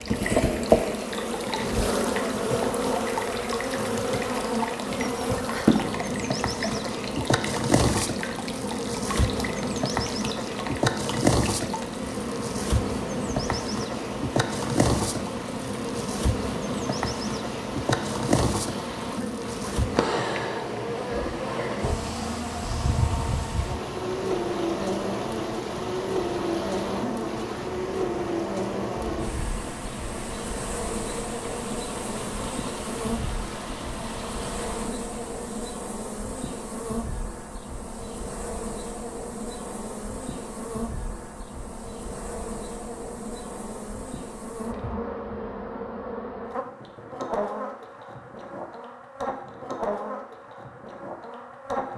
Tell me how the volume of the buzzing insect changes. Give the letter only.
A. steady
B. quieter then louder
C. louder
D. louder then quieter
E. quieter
E.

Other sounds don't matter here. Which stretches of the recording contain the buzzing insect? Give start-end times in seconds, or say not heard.
0.0-51.9.